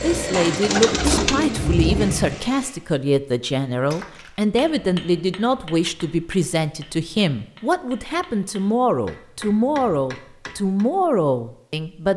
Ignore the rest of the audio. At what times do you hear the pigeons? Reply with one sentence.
The pigeons can be heard from 0.4 to 2.1 s.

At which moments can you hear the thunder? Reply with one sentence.
The thunder can be heard from 0.9 to 2.4 s.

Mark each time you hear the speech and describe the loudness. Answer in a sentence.
You can hear the speech from 0.0 to 12.1 s, at a steady volume.